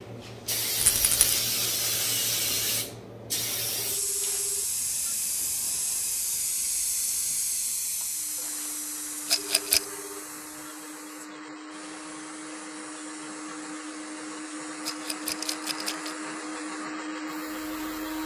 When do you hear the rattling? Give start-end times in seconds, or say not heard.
0.8-1.4, 9.2-9.8, 14.8-16.1.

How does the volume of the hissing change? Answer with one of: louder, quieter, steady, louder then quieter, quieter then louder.
quieter.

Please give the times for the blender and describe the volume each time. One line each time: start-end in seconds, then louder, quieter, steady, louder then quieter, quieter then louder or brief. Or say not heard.
8.1-18.2 louder.